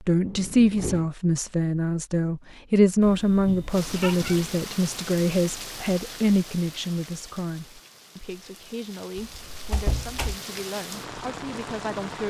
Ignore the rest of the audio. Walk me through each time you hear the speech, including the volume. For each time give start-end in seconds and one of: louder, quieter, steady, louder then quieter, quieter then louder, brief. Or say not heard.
0.0-12.2 quieter.